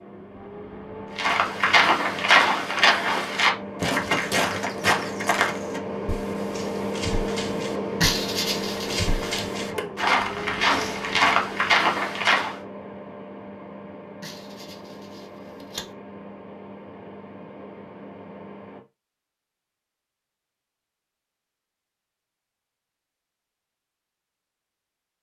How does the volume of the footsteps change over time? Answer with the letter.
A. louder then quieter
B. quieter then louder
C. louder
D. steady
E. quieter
B.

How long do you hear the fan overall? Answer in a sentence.
The fan can be heard for 19 seconds in total.